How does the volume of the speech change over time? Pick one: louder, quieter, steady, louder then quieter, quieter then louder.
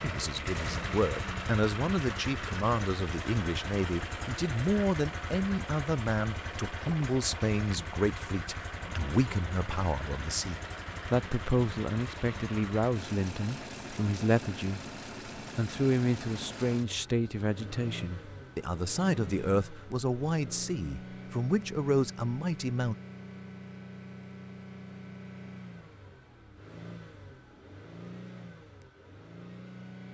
steady.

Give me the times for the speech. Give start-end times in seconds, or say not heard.
0.0-22.9.